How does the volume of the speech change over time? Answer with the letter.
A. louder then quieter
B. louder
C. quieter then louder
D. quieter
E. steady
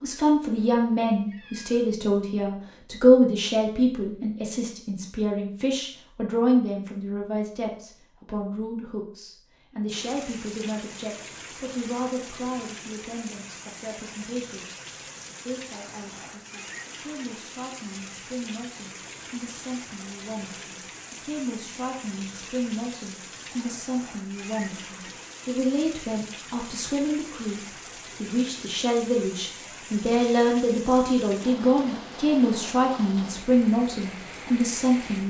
C.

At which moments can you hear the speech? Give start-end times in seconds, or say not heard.
0.0-35.2.